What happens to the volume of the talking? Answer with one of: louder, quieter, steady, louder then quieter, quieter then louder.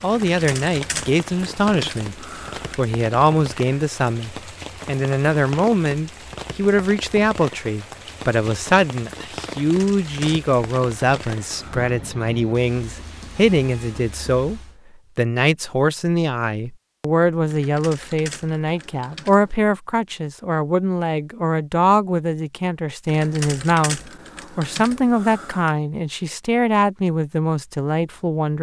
steady.